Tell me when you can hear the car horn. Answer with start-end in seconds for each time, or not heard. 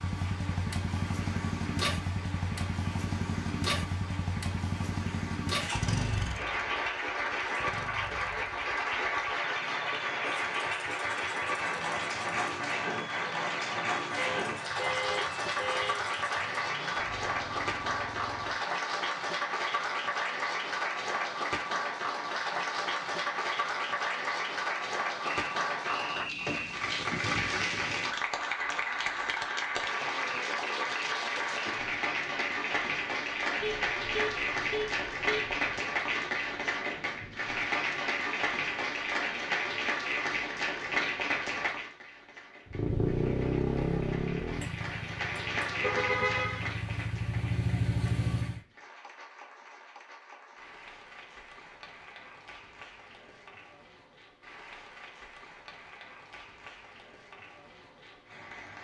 14.2-16.1, 33.6-35.7, 45.8-46.8.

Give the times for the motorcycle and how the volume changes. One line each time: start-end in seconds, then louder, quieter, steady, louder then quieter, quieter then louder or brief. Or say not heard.
0.0-18.7 quieter
42.6-48.6 quieter then louder.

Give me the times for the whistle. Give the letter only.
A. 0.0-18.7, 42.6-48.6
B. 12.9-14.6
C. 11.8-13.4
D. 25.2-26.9
D.